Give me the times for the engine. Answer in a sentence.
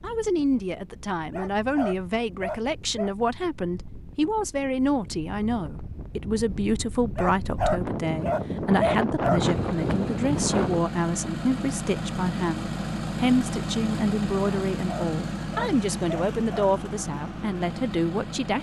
The engine can be heard from 9.4 to 18.5 s.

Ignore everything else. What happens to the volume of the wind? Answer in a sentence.
The loudness of the wind goes up.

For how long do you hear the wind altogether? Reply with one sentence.
The wind can be heard for 11 seconds in total.